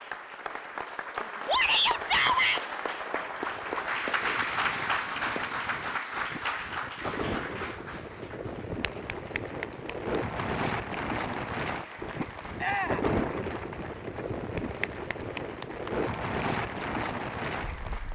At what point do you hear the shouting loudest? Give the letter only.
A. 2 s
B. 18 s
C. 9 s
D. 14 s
A.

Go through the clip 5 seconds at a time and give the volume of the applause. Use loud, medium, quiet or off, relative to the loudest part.
loud, loud, medium, medium.